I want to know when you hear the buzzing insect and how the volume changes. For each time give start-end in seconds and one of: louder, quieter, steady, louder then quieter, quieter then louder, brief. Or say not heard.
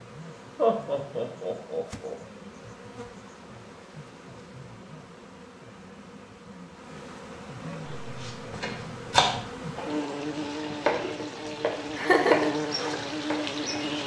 0.0-14.0 louder.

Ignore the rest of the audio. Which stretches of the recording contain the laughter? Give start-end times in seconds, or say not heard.
0.6-2.1, 11.9-12.5.